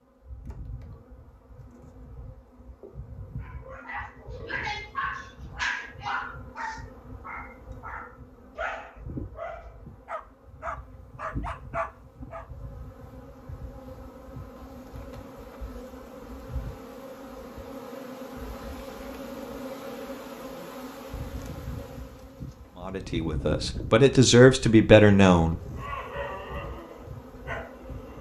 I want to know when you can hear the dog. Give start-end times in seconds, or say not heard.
3.4-12.4, 25.8-28.1.